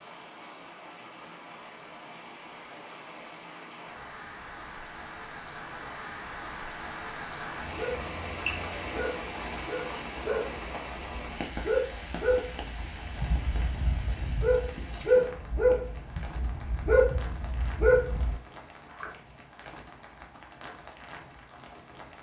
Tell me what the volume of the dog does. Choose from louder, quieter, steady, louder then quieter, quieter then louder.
louder.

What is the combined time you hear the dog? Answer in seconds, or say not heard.
11 s.